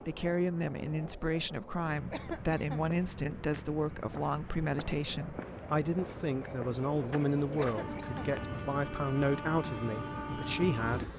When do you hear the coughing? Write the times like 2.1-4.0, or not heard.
2.1-2.9, 7.5-8.4.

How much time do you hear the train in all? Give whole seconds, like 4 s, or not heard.
11 s.